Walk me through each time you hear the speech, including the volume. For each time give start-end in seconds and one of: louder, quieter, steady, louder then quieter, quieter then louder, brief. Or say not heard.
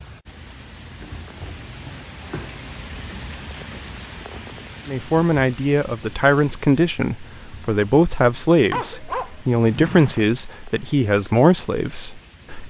4.8-12.6 steady.